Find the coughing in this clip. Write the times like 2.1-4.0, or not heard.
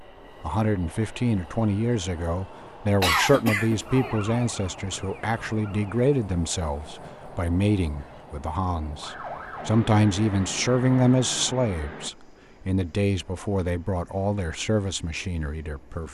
3.0-4.2.